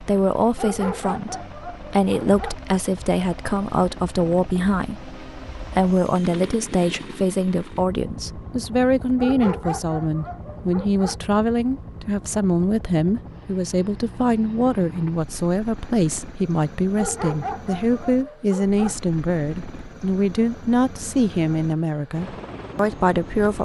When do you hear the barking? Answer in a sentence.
You can hear the barking from 0.6 to 2.5 s, from 9.2 to 11.2 s and from 16.9 to 18.9 s.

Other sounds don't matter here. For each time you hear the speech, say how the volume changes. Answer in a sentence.
The speech can be heard from 0.0 to 23.6 s, at a steady volume.